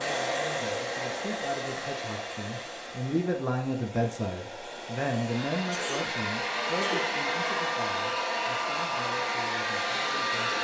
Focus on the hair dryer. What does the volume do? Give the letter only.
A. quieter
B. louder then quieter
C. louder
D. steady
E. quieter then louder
E.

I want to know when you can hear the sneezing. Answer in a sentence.
You can hear the sneezing from 5.5 to 7.2 s.